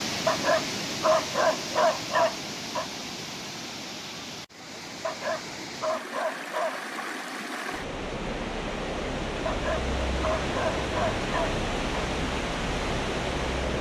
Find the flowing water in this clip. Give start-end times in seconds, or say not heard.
0.0-13.7.